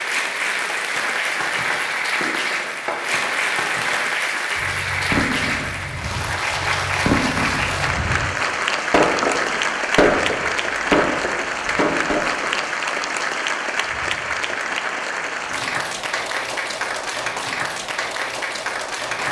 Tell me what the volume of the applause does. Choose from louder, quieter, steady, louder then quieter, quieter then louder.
steady.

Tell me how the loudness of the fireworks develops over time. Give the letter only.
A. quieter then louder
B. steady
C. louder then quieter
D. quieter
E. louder
E.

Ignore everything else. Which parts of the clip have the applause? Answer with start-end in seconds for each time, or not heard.
0.0-19.2.